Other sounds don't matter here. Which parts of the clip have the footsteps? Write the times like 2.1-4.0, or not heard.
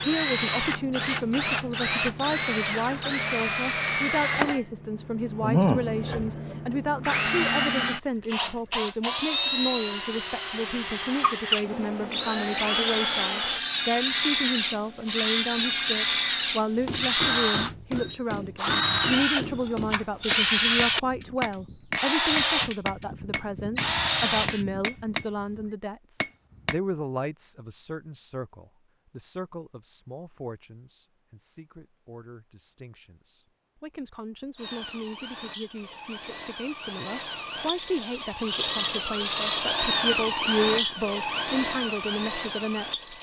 not heard.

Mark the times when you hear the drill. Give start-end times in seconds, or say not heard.
0.0-24.6, 34.5-43.1.